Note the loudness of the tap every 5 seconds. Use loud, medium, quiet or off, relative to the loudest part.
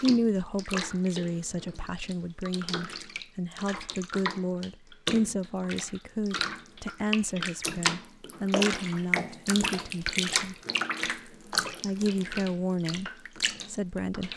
medium, loud, loud.